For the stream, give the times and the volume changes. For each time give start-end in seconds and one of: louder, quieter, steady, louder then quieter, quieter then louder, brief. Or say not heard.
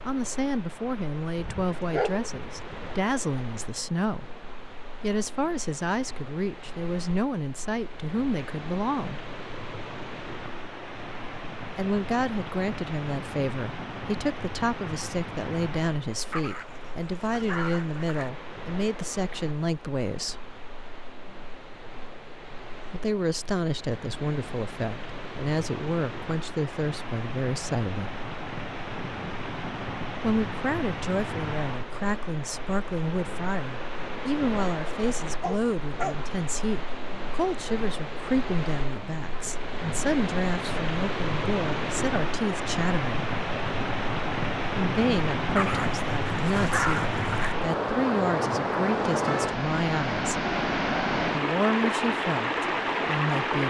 0.0-53.6 louder.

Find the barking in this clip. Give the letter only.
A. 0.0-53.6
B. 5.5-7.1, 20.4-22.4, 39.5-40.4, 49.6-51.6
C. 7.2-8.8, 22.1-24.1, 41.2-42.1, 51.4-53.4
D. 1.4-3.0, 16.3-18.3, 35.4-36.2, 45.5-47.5
D.